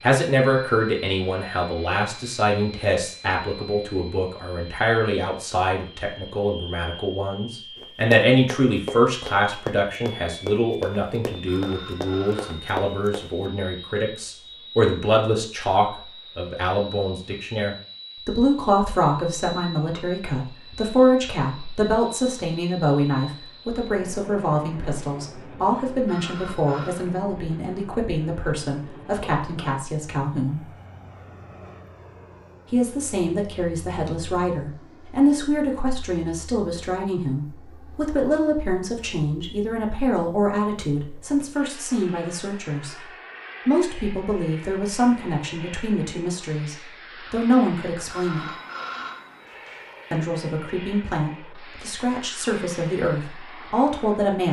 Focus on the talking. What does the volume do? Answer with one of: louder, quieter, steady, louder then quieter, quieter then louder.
steady.